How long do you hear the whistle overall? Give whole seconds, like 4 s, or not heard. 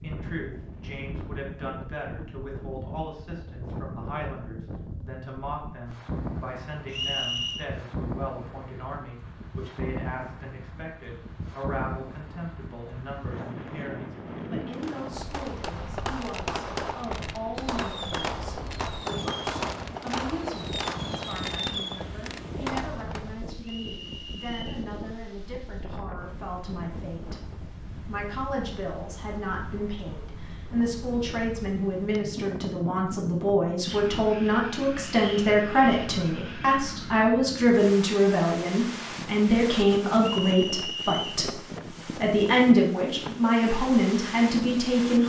3 s.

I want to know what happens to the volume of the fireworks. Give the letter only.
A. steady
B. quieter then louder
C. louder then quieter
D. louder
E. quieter
A.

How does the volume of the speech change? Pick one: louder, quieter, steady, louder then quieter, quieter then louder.
louder.